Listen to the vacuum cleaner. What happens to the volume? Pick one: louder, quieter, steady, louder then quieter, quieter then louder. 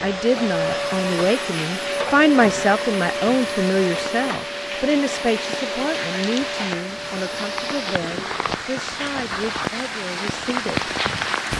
quieter.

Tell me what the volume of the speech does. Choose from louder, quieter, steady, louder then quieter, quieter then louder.
quieter.